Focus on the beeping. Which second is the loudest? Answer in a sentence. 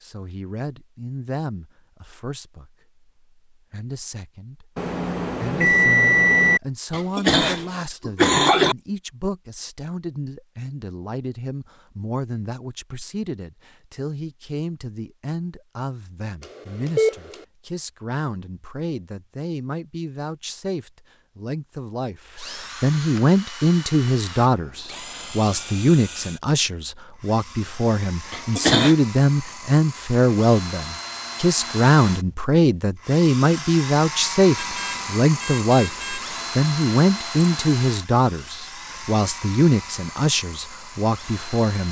The loudest moment of the beeping is at 6 seconds.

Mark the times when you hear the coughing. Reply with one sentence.
You can hear the coughing from 6.9 to 8.8 s and from 28.3 to 28.9 s.